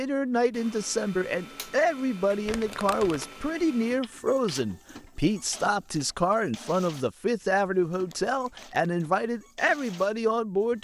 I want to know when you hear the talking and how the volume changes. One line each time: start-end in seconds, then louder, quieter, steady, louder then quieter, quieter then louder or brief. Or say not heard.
0.0-10.7 steady.